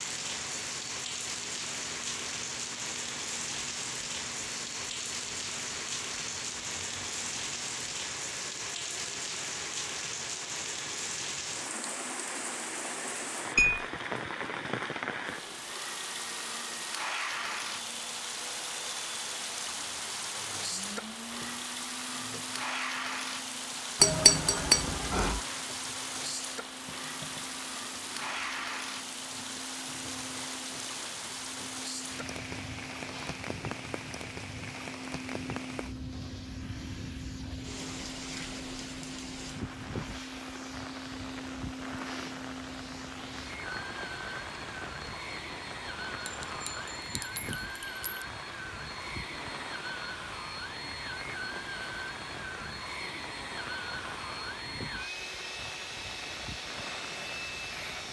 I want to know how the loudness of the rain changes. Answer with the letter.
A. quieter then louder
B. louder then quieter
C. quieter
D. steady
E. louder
C.